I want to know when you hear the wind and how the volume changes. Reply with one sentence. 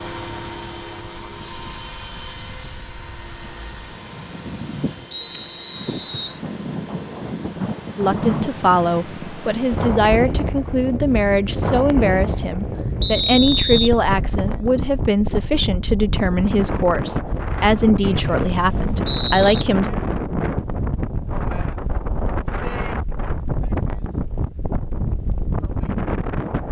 You can hear the wind from 0.0 to 26.6 s, getting louder.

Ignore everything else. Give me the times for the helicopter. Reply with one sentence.
The helicopter can be heard from 0.0 to 10.8 s.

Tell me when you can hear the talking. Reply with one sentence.
The talking can be heard from 8.0 to 19.9 s.